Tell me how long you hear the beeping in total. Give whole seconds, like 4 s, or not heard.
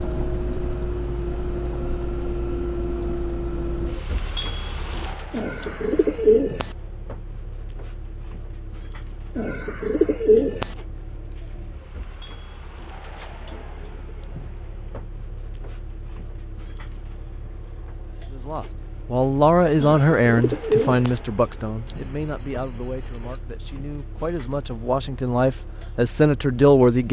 3 s.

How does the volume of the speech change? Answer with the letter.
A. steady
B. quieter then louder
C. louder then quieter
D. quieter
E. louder
B.